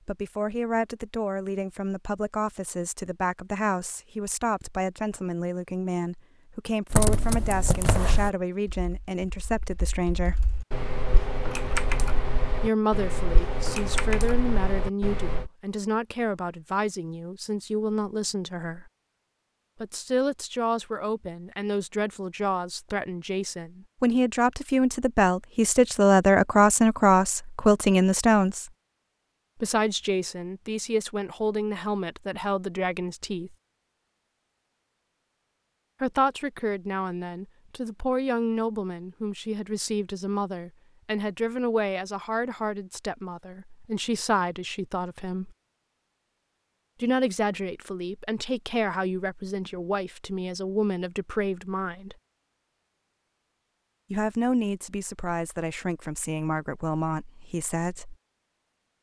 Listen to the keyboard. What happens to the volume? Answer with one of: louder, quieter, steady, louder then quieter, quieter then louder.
quieter then louder.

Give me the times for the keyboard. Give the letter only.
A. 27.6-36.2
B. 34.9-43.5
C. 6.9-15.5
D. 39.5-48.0
C.